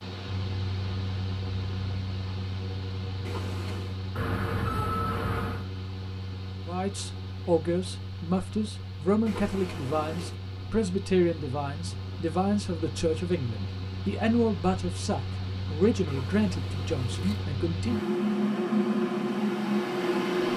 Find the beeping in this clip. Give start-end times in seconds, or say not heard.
4.2-5.7.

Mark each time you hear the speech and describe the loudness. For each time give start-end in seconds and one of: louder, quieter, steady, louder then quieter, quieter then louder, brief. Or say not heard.
6.7-18.0 steady.